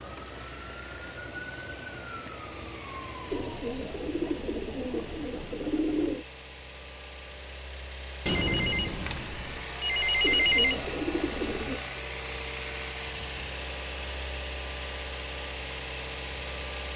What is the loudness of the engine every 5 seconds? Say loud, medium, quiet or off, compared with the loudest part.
medium, medium, loud, loud.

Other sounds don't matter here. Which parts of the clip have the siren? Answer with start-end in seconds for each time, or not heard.
0.0-3.6.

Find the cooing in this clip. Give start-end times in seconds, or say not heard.
3.3-6.2, 10.2-11.8.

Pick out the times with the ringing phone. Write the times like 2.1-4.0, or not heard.
8.2-10.8.